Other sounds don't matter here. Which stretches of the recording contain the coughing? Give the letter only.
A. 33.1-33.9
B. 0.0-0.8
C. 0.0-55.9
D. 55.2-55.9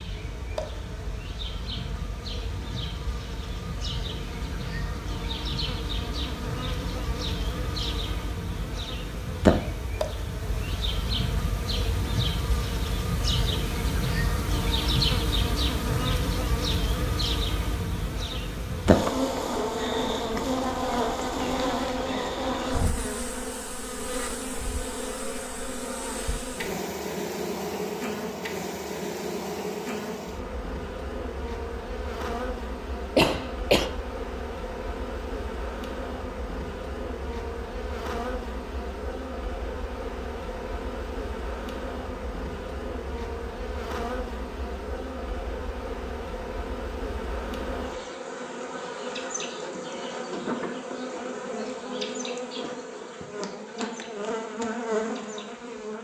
A.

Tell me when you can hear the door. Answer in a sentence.
The door can't be heard in this clip.